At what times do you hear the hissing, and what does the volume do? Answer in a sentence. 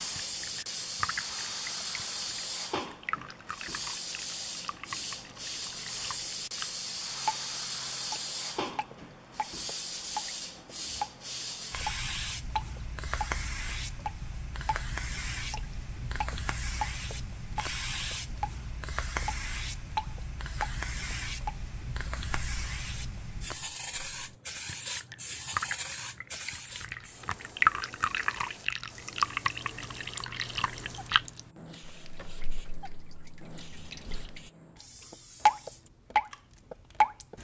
The hissing can be heard from 0.0 to 37.3 s, getting quieter.